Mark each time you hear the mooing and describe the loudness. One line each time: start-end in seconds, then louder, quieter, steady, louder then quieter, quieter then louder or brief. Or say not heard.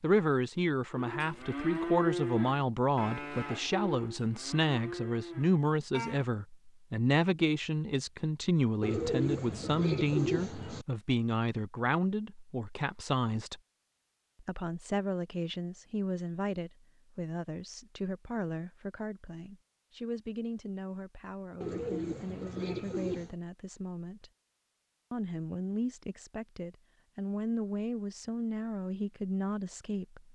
0.9-6.3 quieter.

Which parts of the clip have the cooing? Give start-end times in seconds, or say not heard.
8.8-10.8, 21.6-23.4.